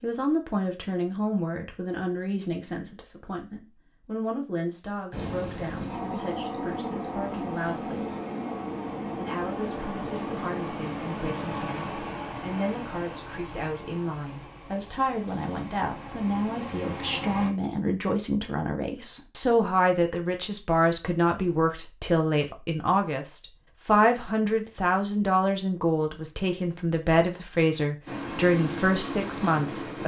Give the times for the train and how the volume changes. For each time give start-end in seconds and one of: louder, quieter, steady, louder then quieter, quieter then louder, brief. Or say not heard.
5.1-17.5 quieter
28.1-30.0 brief.